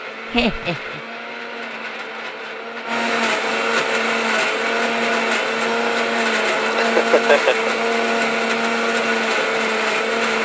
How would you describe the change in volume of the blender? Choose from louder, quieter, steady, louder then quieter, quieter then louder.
louder.